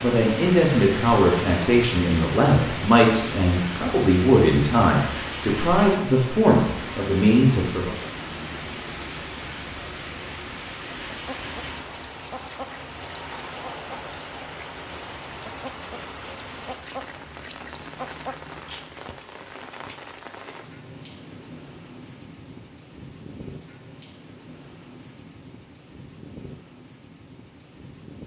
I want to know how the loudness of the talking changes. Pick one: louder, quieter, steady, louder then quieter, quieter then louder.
steady.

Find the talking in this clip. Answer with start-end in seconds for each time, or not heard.
0.0-8.0.